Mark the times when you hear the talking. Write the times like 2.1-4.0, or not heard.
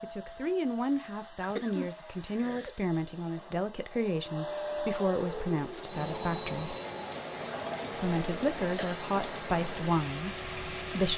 0.0-6.8, 7.9-11.1.